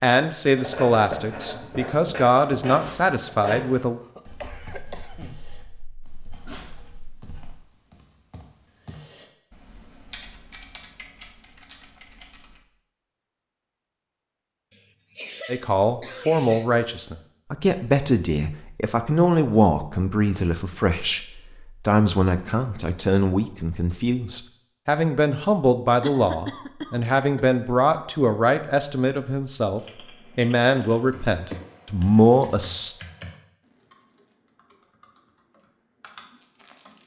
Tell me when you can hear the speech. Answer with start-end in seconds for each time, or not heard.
0.0-4.0, 15.4-33.0.